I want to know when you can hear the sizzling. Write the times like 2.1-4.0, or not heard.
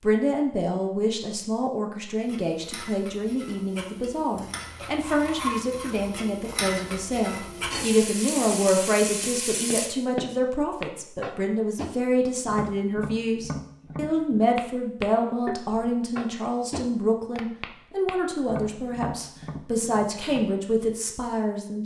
2.2-9.9.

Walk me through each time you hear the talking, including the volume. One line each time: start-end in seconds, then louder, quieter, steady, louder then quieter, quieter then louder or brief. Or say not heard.
0.0-21.8 steady.